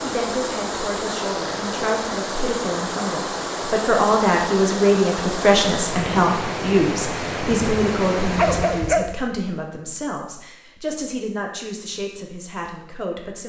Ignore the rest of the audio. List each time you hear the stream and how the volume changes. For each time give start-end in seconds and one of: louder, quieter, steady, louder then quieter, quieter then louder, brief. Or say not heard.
0.0-9.1 steady.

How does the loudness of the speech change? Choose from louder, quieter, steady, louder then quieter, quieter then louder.
louder then quieter.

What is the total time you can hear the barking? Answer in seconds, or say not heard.
2 s.